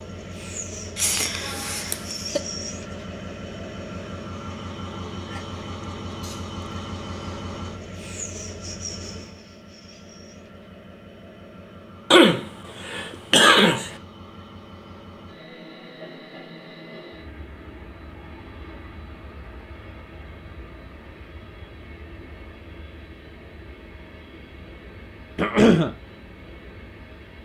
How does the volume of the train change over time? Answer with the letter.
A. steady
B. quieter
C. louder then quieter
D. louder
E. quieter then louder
B.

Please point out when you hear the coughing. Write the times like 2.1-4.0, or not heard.
0.9-2.4, 12.1-13.9, 25.4-25.9.